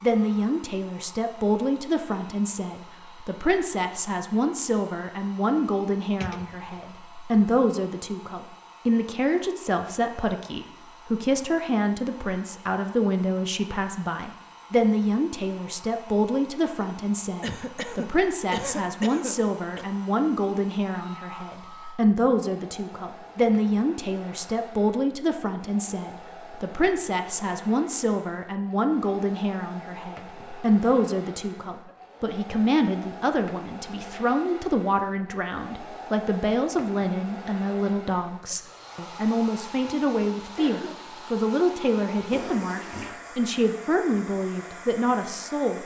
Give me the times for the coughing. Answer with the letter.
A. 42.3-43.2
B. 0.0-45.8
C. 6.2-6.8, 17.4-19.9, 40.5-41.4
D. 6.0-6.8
C.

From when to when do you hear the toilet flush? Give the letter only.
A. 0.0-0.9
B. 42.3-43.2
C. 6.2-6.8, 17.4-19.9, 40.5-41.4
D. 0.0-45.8
B.